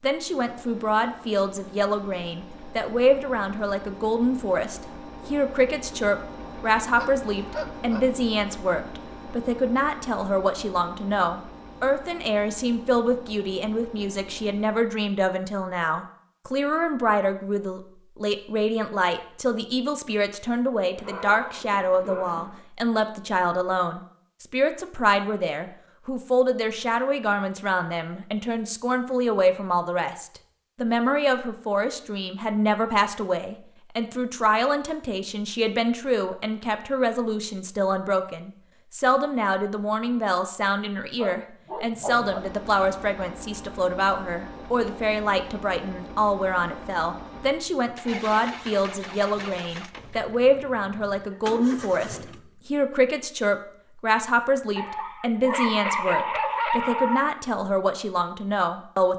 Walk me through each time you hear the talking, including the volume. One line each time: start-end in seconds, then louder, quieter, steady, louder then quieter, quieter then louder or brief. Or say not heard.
0.0-59.1 steady.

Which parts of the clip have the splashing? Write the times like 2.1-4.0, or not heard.
not heard.